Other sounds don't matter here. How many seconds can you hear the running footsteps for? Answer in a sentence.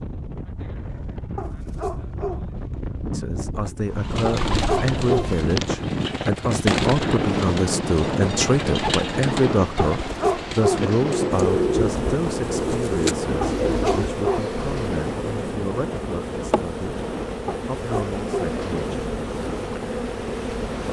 The running footsteps can't be heard in this clip.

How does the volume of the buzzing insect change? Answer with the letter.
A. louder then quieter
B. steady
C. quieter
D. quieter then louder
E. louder
B.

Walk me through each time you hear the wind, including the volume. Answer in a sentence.
The wind can be heard from 0.0 to 20.8 s, getting louder then quieter.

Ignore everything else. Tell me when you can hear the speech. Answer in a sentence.
You can hear the speech from 3.1 to 19.0 s.